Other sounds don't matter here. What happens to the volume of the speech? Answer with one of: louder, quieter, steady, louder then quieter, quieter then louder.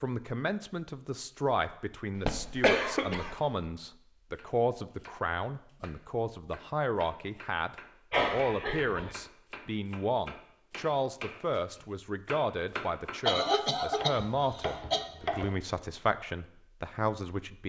steady.